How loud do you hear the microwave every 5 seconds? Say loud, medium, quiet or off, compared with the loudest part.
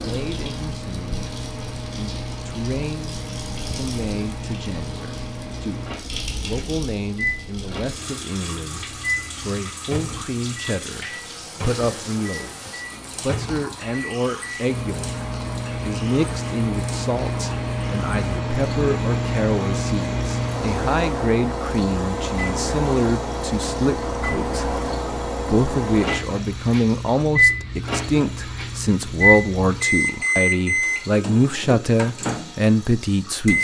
medium, medium, medium, loud, loud, loud, loud.